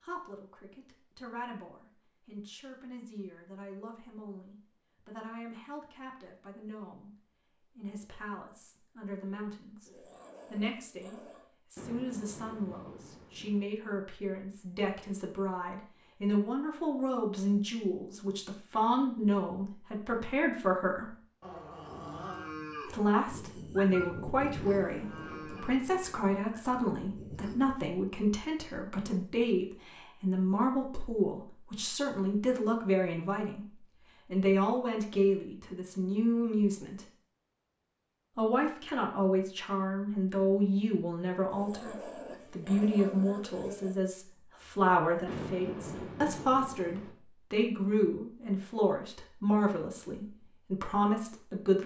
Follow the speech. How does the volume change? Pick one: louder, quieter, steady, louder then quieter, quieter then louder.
louder.